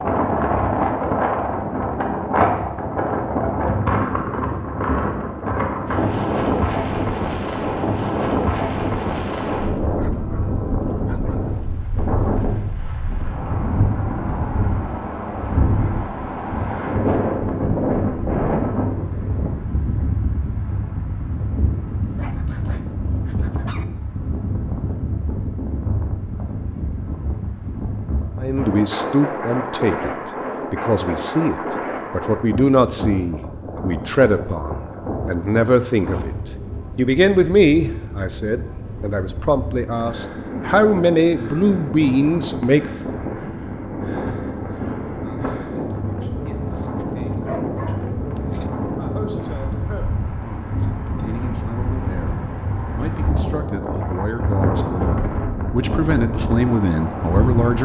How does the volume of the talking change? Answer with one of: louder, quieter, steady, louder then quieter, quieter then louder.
quieter then louder.